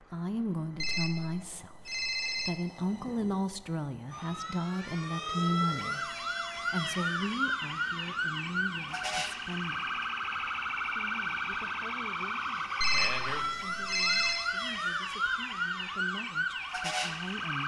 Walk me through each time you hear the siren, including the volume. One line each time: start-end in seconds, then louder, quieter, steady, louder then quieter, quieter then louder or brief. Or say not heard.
4.1-17.6 steady.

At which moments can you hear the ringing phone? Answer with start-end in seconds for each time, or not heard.
0.8-2.5, 12.8-14.4.